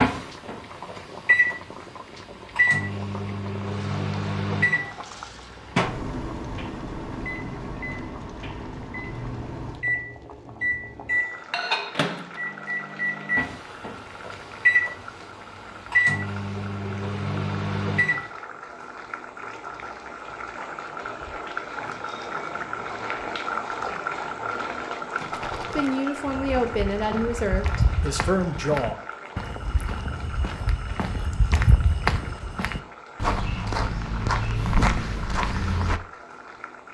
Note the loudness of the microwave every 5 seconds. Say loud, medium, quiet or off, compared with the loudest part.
loud, medium, loud, loud, off, off, off, off.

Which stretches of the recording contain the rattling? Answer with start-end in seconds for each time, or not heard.
25.2-25.9.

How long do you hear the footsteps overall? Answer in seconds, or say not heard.
10 s.